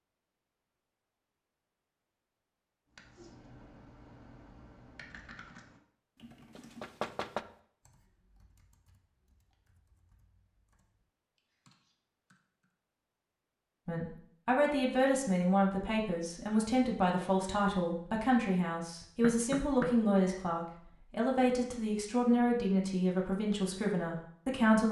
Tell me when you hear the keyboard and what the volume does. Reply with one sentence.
The keyboard can be heard from 3.0 to 12.8 s, getting quieter then louder.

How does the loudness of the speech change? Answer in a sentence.
The loudness of the speech stays about the same.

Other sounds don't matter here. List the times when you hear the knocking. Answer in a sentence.
You can hear the knocking from 6.5 to 7.5 s and from 19.2 to 20.1 s.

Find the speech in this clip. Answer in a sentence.
The speech can be heard from 13.8 to 24.8 s.